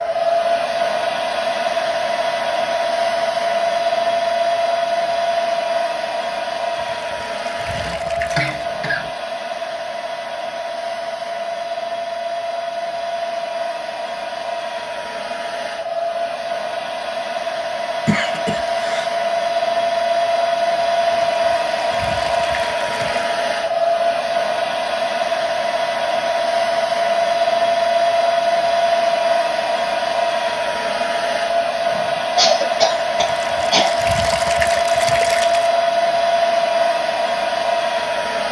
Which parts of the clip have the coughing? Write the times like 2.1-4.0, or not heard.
7.8-9.1, 18.1-19.1, 31.9-34.0.